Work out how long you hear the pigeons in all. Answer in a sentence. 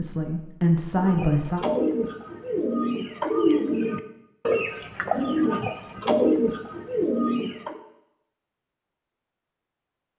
You can hear the pigeons for 7 seconds altogether.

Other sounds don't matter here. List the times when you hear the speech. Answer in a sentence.
The speech can be heard from 0.0 to 1.6 s.